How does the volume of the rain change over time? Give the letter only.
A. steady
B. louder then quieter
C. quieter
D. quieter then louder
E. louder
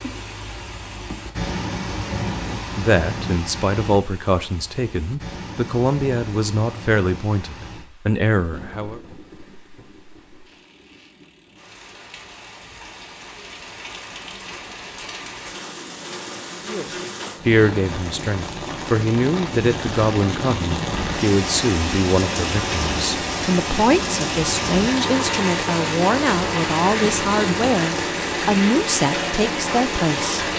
D.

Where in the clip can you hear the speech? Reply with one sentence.
The speech can be heard from 2.8 to 9.0 s and from 16.6 to 30.5 s.